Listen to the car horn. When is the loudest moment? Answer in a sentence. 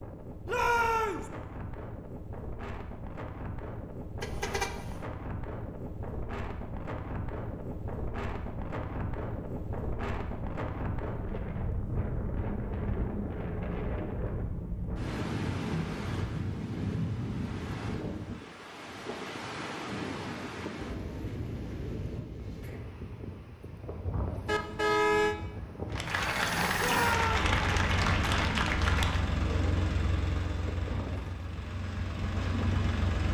The volume of the car horn peaks at 25 seconds.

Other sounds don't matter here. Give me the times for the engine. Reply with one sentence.
You can hear the engine from 26.1 to 33.2 s.